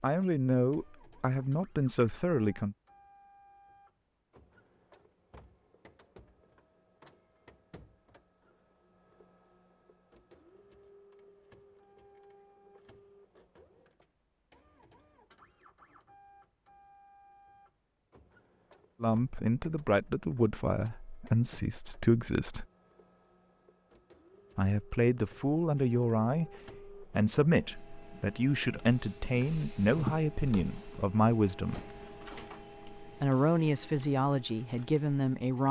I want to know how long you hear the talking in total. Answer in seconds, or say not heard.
16 s.